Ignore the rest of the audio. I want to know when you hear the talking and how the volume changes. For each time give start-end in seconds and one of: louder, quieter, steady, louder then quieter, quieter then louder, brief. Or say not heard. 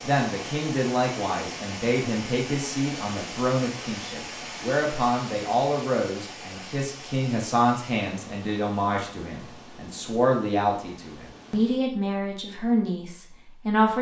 0.0-13.9 steady.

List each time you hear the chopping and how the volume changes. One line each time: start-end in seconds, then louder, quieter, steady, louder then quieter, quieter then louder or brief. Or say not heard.
not heard.